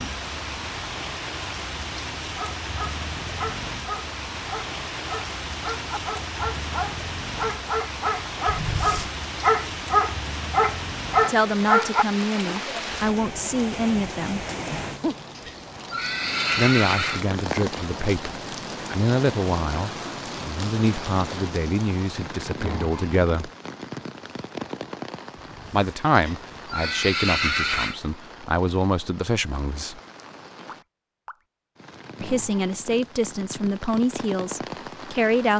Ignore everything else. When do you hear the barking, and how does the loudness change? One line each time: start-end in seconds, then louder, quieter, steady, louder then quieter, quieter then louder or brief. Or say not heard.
2.4-12.1 louder.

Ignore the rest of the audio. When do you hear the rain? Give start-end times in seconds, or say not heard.
0.0-35.5.